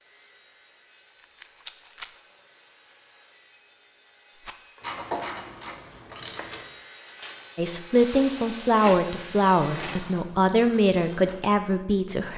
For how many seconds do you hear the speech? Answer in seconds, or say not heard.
5 s.